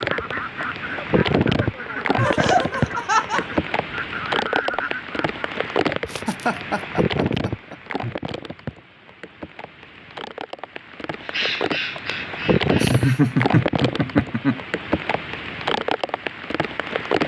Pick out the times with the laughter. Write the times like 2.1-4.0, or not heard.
2.1-3.6, 6.1-7.8, 12.8-14.6.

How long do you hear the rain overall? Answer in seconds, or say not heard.
17 s.